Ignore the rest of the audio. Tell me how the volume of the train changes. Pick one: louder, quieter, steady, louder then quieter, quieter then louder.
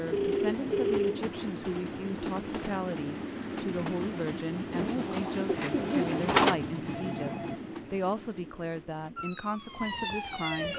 quieter.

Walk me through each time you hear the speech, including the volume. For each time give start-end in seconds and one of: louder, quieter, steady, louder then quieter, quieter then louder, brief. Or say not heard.
0.0-10.7 steady.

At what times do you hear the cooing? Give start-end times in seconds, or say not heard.
4.7-6.6.